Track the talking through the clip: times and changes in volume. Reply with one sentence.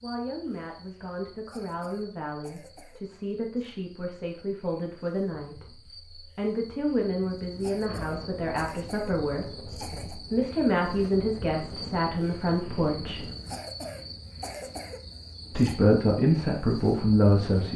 You can hear the talking from 0.0 to 13.2 s, getting louder; and briefly from 15.5 to 17.7 s.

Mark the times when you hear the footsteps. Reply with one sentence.
You can't hear the footsteps here.